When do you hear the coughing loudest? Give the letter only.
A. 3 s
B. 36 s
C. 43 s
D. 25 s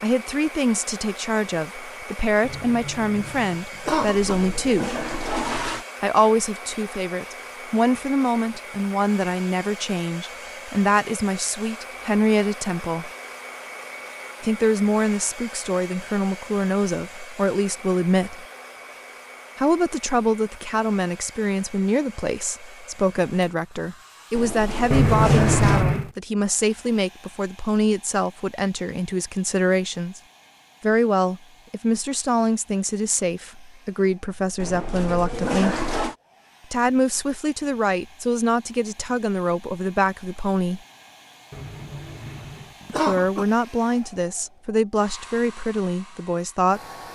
D.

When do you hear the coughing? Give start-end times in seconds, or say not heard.
2.5-4.3, 24.9-26.1, 41.5-43.5.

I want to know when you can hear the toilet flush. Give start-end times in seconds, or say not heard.
3.9-5.8, 24.4-25.9, 34.6-36.1.